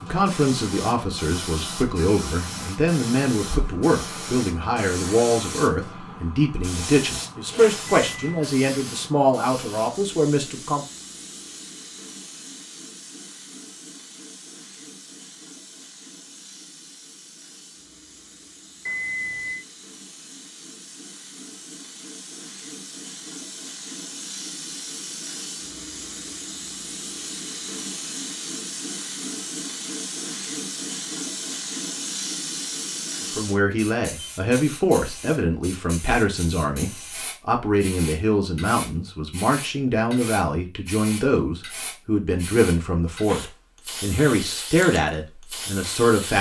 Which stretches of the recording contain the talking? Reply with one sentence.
You can hear the talking from 0.0 to 10.8 s and from 33.4 to 46.3 s.